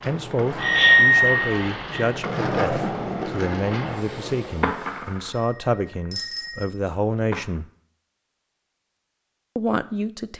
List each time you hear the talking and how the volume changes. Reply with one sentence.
The talking can be heard from 0.1 to 7.7 s, at a steady volume; and briefly from 9.6 to 10.3 s.